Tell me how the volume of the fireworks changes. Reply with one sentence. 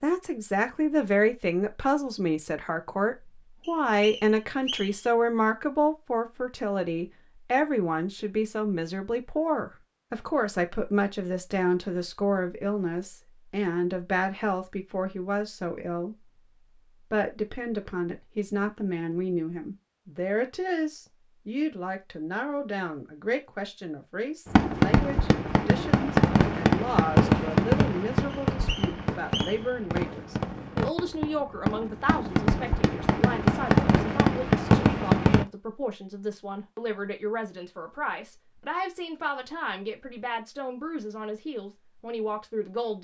The volume of the fireworks goes down, then up.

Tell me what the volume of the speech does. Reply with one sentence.
The loudness of the speech goes down.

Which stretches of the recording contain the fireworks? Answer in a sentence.
You can hear the fireworks from 24.5 to 35.5 s.